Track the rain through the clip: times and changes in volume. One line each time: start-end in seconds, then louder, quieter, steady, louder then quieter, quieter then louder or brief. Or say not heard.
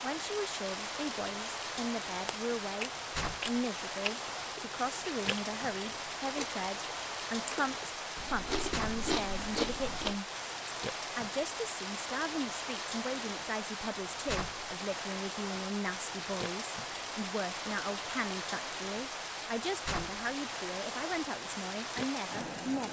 0.0-22.8 steady.